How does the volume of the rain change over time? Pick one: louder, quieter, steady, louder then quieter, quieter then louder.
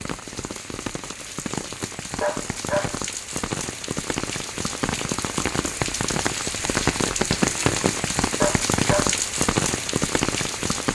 louder.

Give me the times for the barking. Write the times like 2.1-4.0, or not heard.
2.2-3.0, 8.4-9.2.